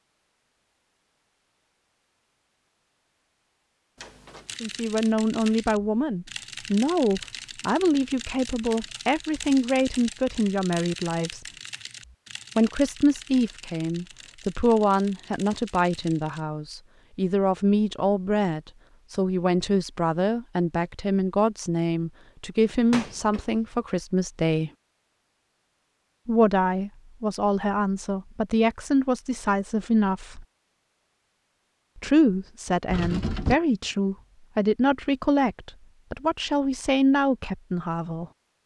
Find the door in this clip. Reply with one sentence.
The door can be heard from 4.0 to 4.5 s, from 22.7 to 23.6 s and from 32.9 to 33.6 s.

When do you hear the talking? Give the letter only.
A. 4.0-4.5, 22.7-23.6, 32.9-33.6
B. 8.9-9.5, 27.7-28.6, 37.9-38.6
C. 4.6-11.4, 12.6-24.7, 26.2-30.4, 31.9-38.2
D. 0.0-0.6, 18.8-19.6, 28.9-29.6
C.